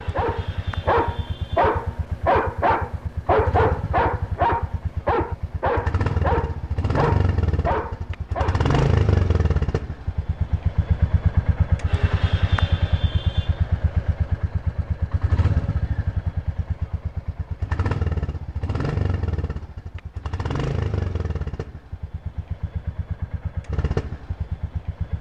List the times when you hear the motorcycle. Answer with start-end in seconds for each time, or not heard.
0.0-25.1.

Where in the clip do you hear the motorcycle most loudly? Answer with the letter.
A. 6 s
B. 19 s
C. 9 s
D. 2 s
C.